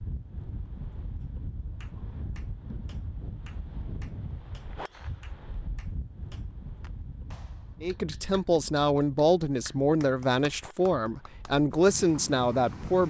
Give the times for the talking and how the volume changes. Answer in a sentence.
The talking can be heard from 7.8 to 13.0 s, at a steady volume.